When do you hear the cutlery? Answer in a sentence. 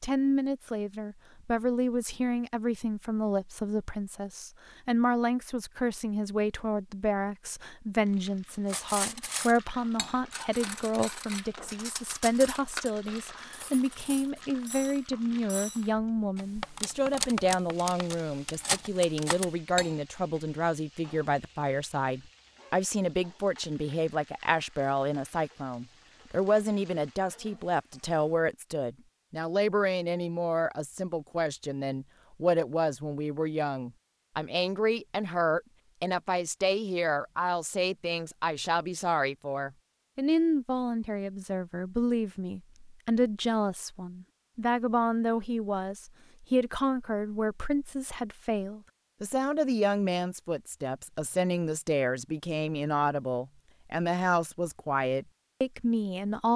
You can hear the cutlery from 8.7 to 19.9 s.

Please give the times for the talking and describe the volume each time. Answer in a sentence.
The talking can be heard from 0.0 to 56.5 s, at a steady volume.